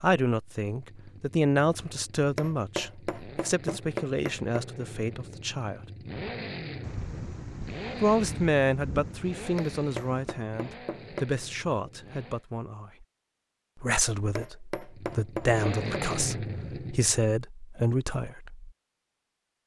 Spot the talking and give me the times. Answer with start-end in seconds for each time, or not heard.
0.0-5.8, 8.0-12.9, 13.8-18.7.